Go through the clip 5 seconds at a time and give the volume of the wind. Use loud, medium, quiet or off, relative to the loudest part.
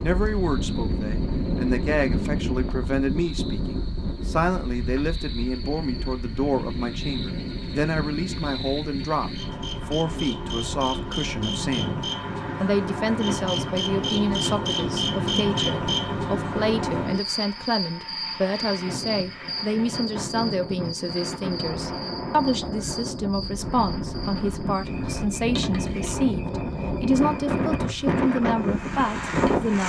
loud, medium, medium, medium, medium, loud.